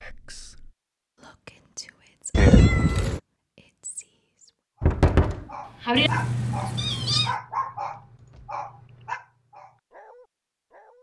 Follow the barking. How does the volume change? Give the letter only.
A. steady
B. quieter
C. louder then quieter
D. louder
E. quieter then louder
B.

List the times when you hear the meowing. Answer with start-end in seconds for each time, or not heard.
2.3-3.2, 6.0-7.3.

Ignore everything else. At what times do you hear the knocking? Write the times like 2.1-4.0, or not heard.
4.8-6.1.